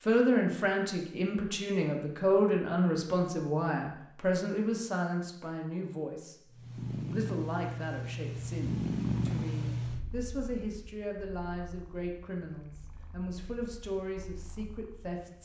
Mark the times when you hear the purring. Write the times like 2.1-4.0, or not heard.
6.5-15.2.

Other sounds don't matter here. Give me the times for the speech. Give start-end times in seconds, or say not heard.
0.0-15.4.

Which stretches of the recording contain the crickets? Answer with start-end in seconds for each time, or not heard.
not heard.